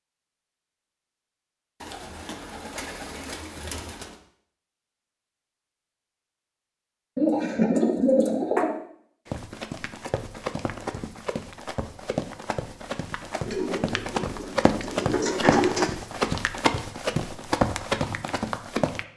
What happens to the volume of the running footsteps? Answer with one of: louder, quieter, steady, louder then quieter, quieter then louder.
louder.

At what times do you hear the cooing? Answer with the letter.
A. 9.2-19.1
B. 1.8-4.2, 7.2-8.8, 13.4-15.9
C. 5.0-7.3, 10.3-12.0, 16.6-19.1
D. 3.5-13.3
B.